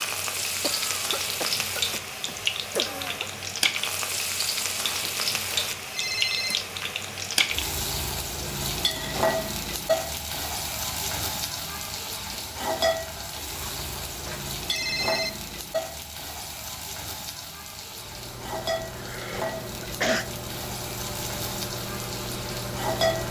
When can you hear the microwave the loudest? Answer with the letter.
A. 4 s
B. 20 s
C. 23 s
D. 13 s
C.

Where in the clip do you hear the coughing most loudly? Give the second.
20 s.